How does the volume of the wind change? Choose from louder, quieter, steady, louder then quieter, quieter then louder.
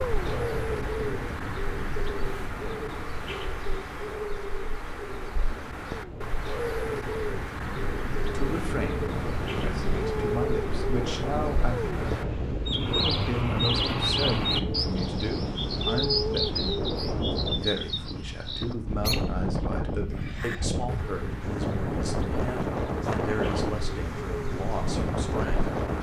louder.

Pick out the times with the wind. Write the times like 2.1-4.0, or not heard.
0.0-25.9.